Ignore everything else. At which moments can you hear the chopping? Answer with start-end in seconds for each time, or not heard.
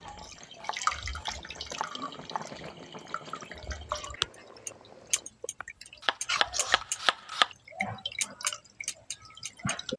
0.6-2.5, 5.6-7.5.